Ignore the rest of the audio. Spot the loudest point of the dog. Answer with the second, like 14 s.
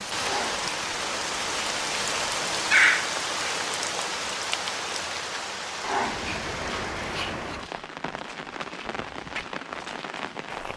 3 s.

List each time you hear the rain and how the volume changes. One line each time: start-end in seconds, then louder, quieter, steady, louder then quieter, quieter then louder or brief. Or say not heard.
0.0-10.7 quieter.